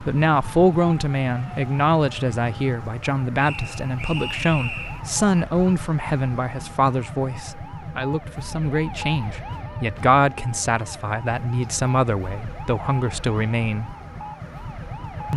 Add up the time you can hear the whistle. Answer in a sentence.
The whistle can be heard for 2 seconds in total.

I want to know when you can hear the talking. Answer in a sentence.
You can hear the talking from 0.0 to 13.9 s.